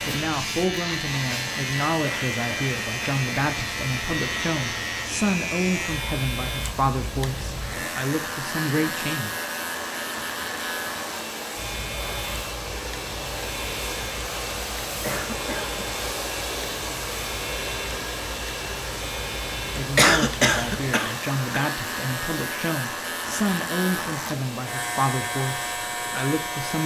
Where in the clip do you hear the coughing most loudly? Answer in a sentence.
The volume of the coughing peaks at 20 seconds.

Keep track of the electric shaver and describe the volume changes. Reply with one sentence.
The loudness of the electric shaver goes down, then up.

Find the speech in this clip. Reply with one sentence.
The speech can be heard from 0.0 to 9.3 s and from 19.6 to 26.8 s.